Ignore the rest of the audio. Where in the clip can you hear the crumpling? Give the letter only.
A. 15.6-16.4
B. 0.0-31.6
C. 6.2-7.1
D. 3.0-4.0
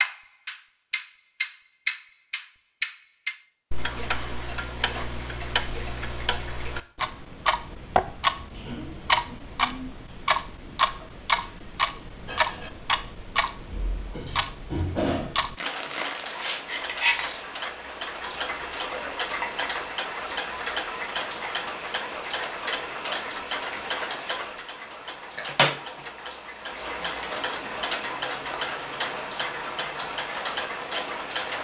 A.